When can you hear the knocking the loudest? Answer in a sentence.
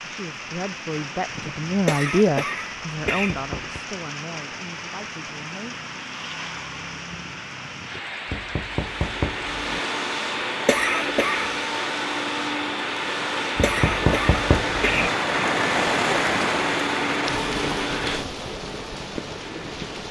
The volume of the knocking peaks at 14 seconds.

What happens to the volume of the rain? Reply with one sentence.
The loudness of the rain goes up.